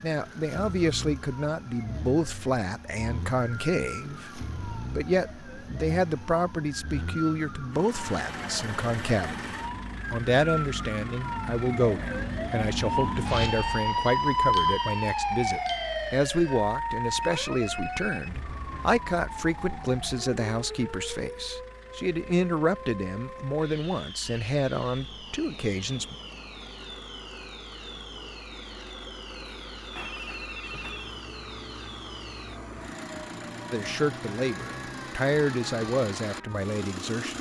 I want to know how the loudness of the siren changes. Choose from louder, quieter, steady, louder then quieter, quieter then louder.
louder then quieter.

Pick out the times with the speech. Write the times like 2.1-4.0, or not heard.
0.0-26.1, 33.7-37.3.